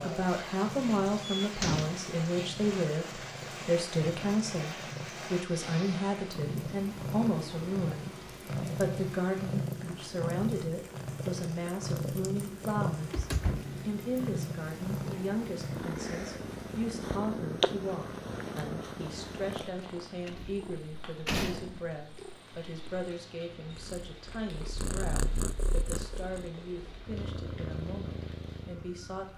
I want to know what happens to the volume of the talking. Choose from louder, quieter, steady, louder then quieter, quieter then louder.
quieter.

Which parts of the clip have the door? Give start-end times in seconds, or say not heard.
1.4-2.0, 12.9-13.8, 20.2-21.8.